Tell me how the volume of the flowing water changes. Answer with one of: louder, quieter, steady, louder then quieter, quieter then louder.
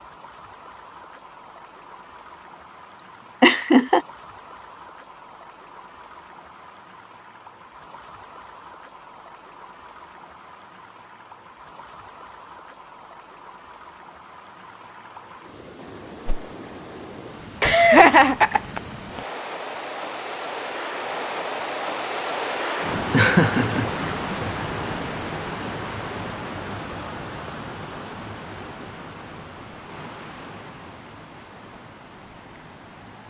louder then quieter.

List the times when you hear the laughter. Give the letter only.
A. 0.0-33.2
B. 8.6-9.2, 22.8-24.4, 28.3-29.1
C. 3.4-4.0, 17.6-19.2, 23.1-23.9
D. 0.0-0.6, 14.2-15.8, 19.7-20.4
C.